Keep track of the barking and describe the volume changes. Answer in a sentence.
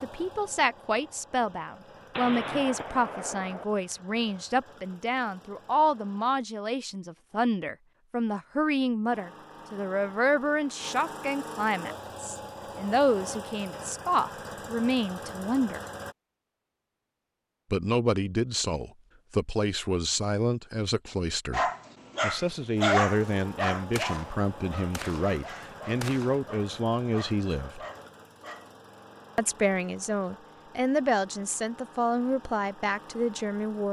The volume of the barking goes down.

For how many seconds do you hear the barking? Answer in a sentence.
The barking can be heard for 7 seconds in total.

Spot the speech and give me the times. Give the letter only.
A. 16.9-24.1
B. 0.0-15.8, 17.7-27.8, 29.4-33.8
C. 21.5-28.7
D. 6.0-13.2
B.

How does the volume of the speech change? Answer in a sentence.
The volume of the speech stays about the same.